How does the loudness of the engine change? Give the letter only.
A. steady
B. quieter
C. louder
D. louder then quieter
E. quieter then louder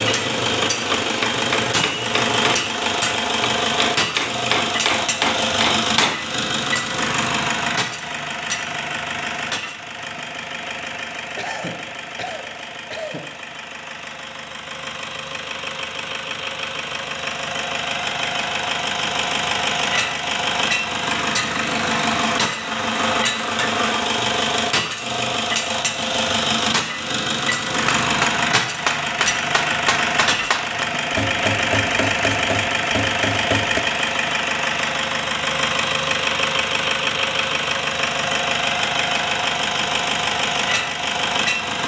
E.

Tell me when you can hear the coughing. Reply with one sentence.
The coughing can be heard from 11.3 to 13.2 s.